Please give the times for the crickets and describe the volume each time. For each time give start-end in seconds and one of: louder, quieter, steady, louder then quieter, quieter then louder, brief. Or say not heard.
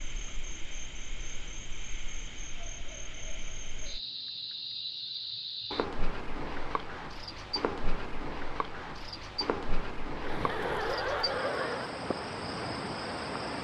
0.0-13.5 louder.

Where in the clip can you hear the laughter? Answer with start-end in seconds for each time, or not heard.
10.2-12.0.